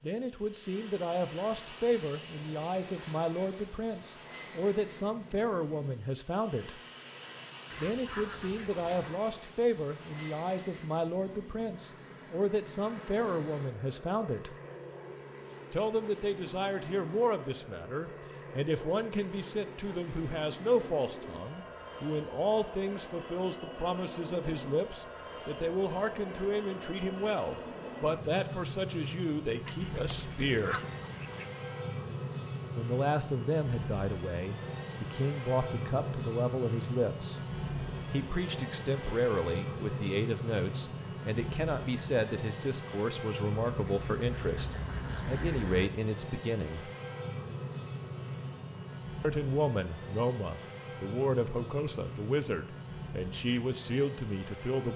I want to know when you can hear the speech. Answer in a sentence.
You can hear the speech from 0.0 to 6.8 s, from 7.8 to 14.6 s, from 15.7 to 30.8 s, from 32.8 to 37.4 s, from 38.1 to 46.9 s and from 49.2 to 54.9 s.